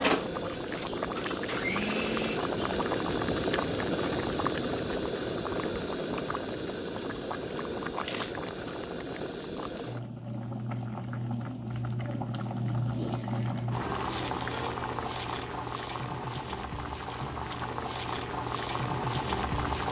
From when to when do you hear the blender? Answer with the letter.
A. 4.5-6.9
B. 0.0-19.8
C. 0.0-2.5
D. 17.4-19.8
C.